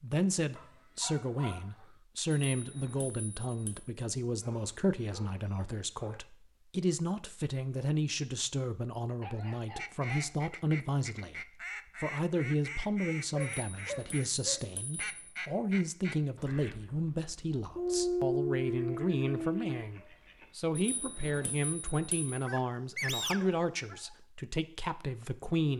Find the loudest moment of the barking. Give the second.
18 s.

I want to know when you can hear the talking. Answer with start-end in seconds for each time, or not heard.
0.0-25.7.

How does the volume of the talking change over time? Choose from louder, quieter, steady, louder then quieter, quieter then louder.
steady.